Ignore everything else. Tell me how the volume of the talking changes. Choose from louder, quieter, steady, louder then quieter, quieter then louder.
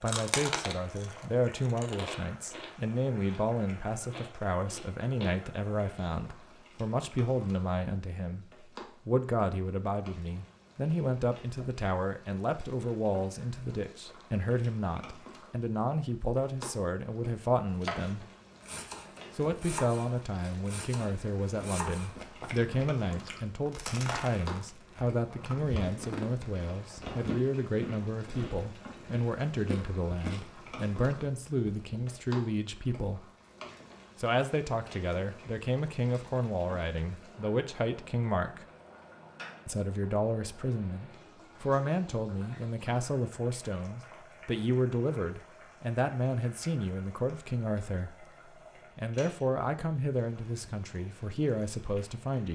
steady.